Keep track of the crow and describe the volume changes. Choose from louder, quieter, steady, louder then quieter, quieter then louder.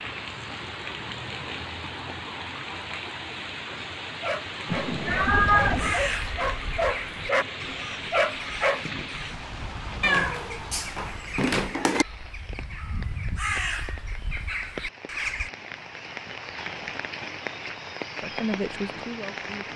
quieter then louder.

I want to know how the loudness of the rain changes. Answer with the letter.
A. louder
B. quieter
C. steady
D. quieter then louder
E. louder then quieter
D.